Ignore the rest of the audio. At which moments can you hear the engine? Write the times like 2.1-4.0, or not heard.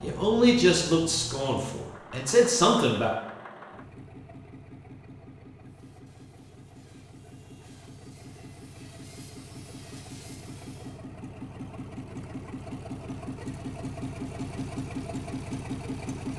0.0-16.3.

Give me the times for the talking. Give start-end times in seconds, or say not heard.
0.0-3.1.